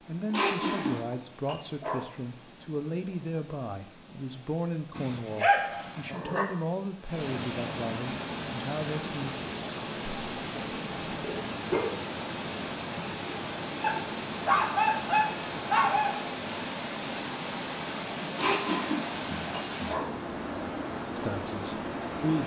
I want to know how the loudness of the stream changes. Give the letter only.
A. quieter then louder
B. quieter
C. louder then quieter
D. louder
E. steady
D.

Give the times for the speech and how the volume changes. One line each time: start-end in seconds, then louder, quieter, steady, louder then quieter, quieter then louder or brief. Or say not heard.
0.1-9.3 steady
21.1-22.4 brief.